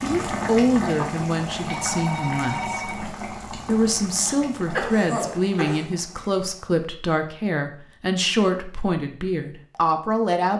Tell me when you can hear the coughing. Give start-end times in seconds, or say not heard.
4.1-5.8.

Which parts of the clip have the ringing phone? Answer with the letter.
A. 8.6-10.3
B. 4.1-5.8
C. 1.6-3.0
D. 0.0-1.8
C.